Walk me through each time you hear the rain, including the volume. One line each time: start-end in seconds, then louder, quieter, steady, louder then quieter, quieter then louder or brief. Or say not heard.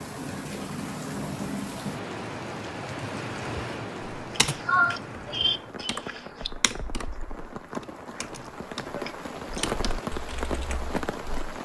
0.0-11.6 quieter then louder.